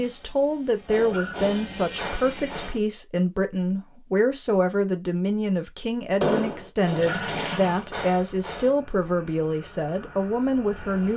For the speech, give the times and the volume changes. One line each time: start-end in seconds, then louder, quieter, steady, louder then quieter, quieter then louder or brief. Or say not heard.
0.0-11.1 steady.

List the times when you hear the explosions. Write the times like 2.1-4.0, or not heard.
6.2-6.7.